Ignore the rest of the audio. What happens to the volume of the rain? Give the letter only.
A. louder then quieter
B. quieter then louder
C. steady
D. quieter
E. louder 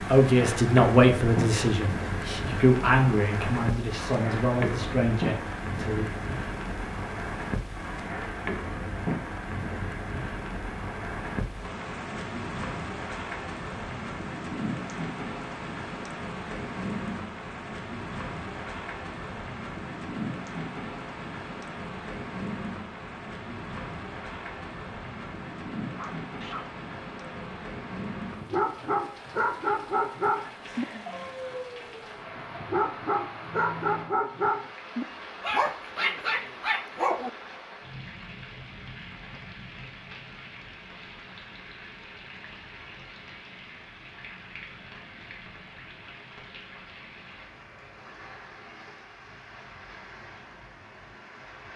D.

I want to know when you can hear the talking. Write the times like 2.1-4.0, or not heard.
0.1-6.1.